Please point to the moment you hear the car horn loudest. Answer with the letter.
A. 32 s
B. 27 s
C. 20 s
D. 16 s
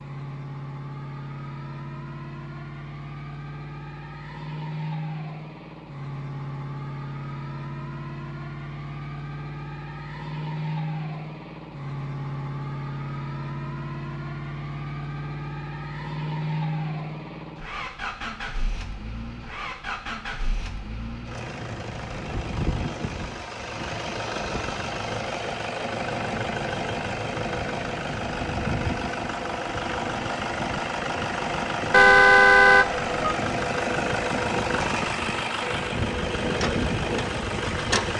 A.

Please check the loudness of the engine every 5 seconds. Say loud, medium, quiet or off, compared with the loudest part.
medium, medium, medium, medium, medium, loud, loud, loud.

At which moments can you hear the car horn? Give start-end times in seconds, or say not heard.
31.9-33.4.